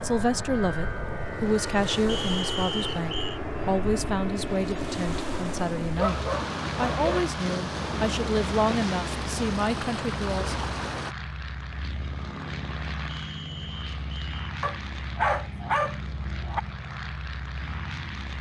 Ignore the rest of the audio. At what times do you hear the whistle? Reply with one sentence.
You can hear the whistle from 2.0 to 3.4 s and from 13.1 to 14.5 s.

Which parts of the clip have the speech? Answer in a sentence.
The speech can be heard from 0.0 to 10.6 s.